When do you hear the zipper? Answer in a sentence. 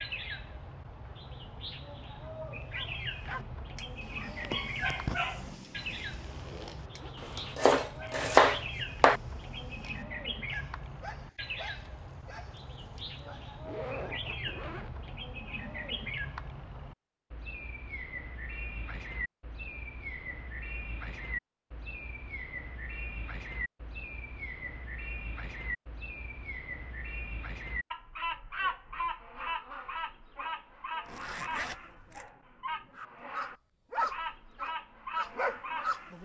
The zipper can be heard from 6.2 to 7.3 s, from 13.7 to 14.9 s and from 31.1 to 32.2 s.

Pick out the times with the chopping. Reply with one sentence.
The chopping can be heard from 7.2 to 9.2 s.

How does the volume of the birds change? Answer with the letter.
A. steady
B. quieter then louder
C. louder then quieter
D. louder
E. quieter
A.